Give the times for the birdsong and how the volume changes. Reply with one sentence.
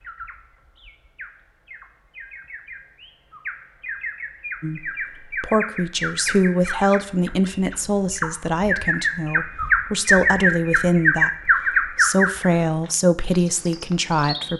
The birdsong can be heard from 0.0 to 14.5 s, getting louder.